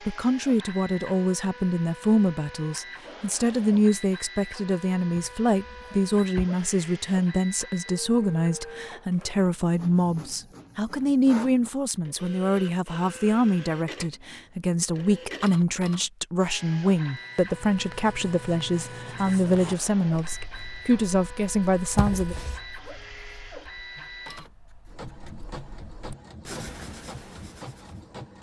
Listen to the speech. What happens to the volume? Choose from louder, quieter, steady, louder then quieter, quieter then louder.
steady.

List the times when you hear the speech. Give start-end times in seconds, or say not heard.
0.1-22.4.